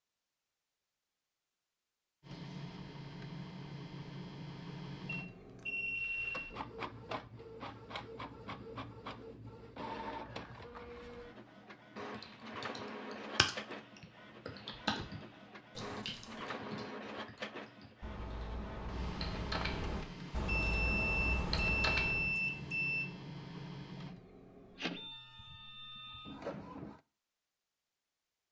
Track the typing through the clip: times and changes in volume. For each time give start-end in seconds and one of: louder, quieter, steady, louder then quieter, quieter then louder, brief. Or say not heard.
12.1-22.4 quieter then louder.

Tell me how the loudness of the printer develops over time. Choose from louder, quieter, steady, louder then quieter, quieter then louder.
steady.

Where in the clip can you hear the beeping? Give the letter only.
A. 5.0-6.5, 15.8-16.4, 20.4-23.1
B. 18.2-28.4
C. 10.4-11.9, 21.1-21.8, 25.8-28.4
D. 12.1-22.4
A.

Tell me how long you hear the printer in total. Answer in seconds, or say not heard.
25 s.